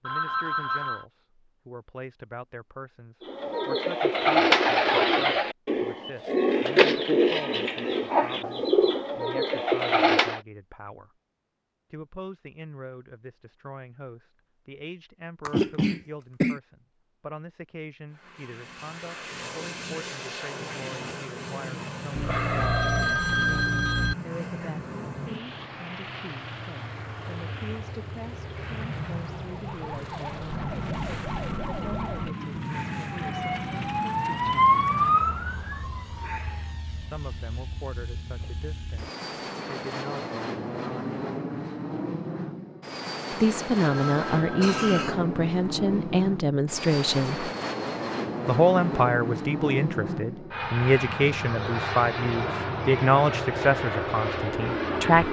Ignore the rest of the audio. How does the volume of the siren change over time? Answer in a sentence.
The loudness of the siren goes up.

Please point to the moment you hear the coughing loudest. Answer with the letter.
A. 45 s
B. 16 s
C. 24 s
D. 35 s
B.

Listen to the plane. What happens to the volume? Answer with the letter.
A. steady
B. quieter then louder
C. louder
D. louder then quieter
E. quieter
C.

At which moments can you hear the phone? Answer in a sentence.
You can hear the phone from 0.1 to 1.1 s, from 22.1 to 24.1 s and from 43.8 to 44.9 s.